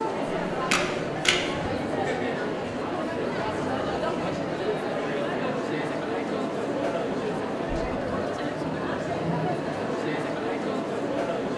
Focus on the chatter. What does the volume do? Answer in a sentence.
The loudness of the chatter stays about the same.